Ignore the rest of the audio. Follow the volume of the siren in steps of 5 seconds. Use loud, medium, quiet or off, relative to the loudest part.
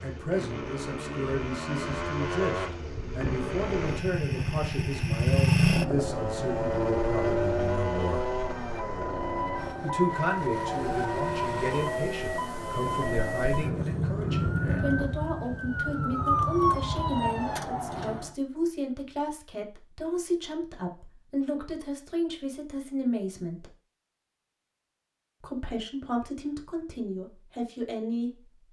off, medium, loud, loud, off, off.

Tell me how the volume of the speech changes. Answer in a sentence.
The volume of the speech stays about the same.